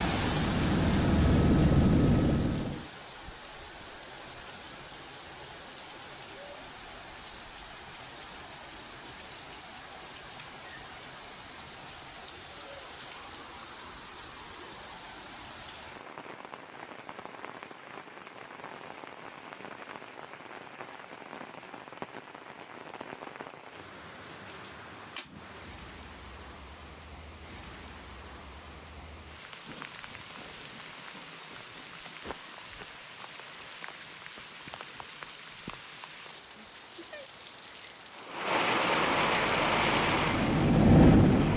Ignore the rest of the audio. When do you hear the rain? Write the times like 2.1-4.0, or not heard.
0.0-41.5.